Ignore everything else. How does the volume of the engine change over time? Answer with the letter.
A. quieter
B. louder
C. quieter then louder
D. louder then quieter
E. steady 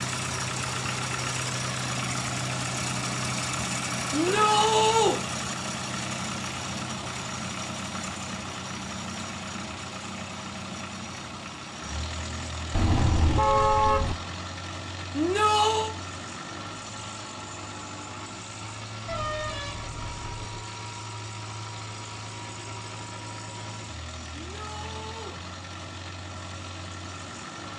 A.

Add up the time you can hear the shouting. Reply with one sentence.
You can hear the shouting for 3 seconds altogether.